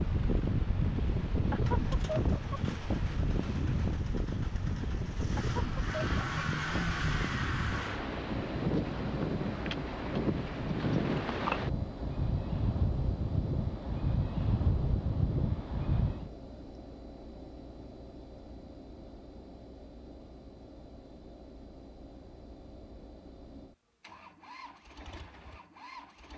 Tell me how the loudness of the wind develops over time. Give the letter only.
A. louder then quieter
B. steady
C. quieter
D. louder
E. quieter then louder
B.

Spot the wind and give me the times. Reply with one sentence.
You can hear the wind from 0.0 to 16.3 s.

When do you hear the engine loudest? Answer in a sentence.
The loudest moment of the engine is at 7 seconds.